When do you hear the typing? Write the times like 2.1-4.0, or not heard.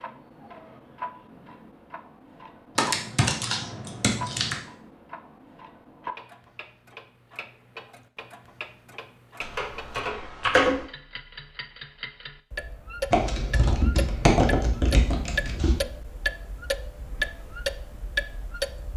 2.8-4.5, 9.4-10.8, 13.1-15.8.